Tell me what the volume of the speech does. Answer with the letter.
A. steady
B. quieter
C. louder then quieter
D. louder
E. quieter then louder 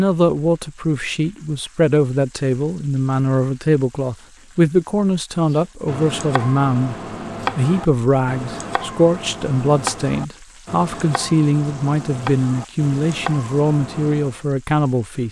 A.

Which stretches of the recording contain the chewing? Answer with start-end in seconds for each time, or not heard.
not heard.